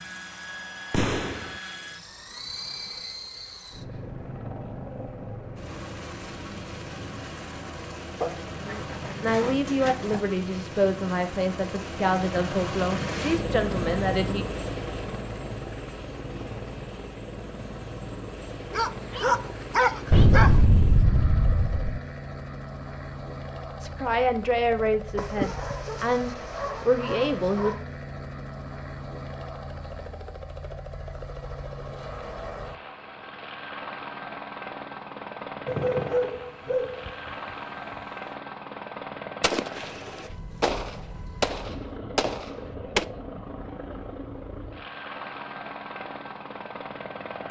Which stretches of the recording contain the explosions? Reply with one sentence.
You can hear the explosions from 0.9 to 1.5 s, from 20.1 to 22.0 s, from 39.4 to 39.9 s and from 40.6 to 43.0 s.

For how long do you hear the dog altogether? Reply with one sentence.
The dog can be heard for 9 seconds in total.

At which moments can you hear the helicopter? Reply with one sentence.
The helicopter can be heard from 0.0 to 47.4 s.